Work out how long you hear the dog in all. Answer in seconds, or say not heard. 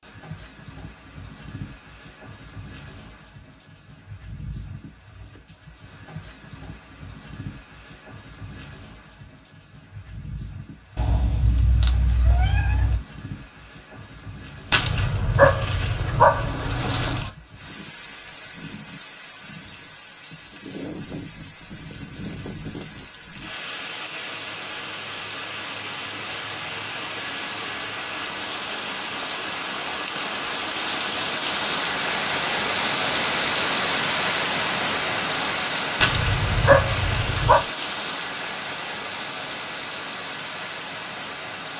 4 s.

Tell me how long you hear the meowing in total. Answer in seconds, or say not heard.
2 s.